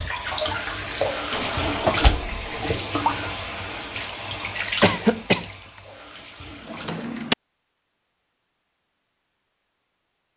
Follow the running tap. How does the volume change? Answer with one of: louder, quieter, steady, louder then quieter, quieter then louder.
quieter.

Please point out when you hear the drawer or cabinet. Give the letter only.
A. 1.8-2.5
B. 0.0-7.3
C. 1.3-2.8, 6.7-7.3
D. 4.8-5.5
C.